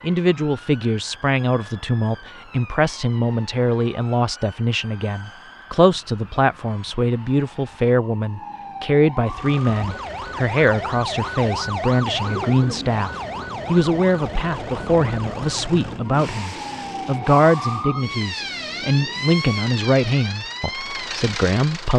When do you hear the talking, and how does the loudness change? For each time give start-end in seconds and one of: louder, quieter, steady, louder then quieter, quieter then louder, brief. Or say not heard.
0.0-21.9 steady.